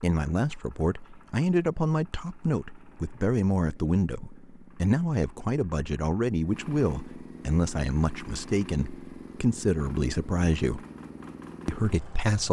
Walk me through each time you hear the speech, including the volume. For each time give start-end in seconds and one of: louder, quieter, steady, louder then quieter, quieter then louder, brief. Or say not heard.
0.0-10.8 steady
11.7-12.4 brief.